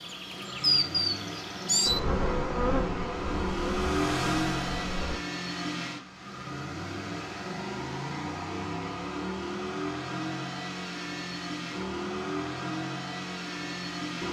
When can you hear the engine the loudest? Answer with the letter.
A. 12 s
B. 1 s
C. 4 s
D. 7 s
C.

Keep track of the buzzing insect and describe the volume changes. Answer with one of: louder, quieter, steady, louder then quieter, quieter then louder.
quieter.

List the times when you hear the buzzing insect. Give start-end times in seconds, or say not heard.
0.0-5.2.